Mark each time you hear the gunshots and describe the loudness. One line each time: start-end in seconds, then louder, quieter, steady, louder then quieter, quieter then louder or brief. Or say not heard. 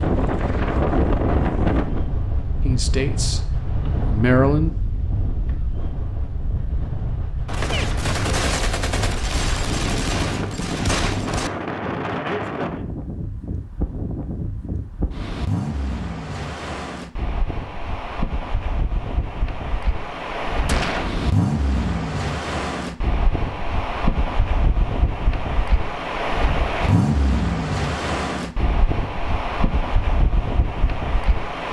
7.5-11.5 steady
20.6-21.1 brief.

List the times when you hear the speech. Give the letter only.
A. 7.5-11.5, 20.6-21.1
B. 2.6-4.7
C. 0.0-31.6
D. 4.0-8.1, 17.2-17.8
B.